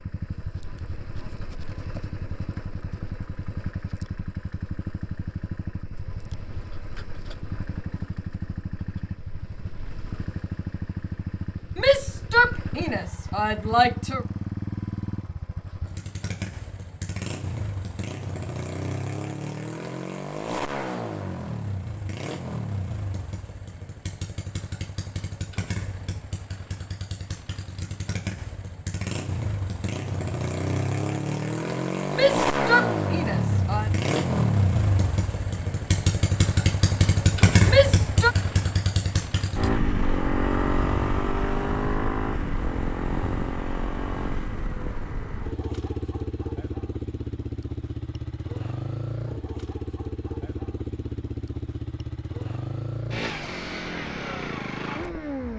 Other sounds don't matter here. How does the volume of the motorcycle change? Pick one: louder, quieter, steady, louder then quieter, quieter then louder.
louder then quieter.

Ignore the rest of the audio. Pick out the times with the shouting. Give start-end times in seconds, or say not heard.
11.8-14.2, 32.1-33.9, 37.6-38.4.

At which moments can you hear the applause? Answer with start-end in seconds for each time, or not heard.
not heard.